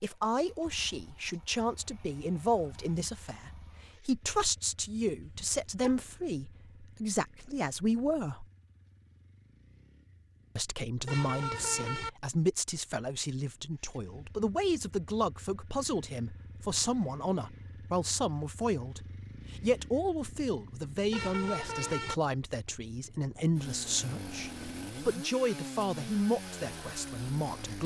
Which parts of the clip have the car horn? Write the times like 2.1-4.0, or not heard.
5.2-6.0, 11.1-12.1, 21.1-22.1.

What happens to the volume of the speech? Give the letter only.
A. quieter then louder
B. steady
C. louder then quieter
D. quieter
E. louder
B.